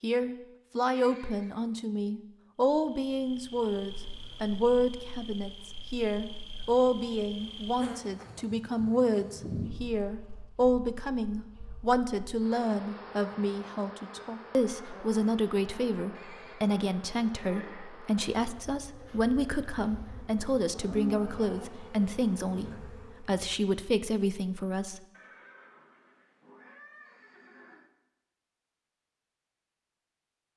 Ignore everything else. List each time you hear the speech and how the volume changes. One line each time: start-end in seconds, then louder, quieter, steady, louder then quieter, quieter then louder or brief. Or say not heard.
0.0-25.0 steady.